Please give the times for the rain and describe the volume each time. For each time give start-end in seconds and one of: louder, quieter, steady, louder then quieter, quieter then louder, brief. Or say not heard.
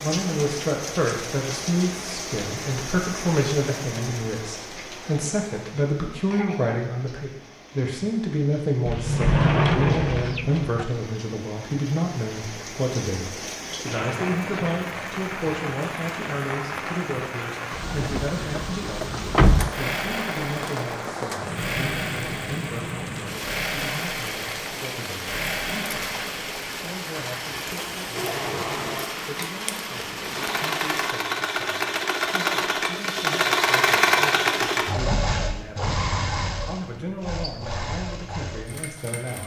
0.0-31.1 quieter then louder.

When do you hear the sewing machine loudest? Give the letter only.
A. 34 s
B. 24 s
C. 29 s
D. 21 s
A.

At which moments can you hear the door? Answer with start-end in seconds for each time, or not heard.
8.8-10.8, 17.9-19.7, 35.0-36.1.